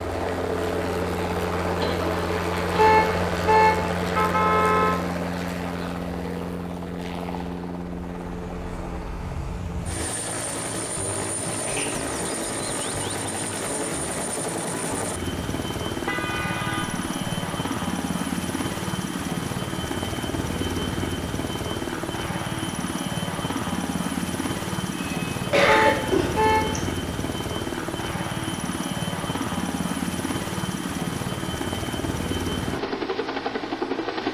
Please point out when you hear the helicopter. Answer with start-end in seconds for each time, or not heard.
0.0-34.2.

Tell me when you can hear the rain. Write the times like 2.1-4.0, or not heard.
not heard.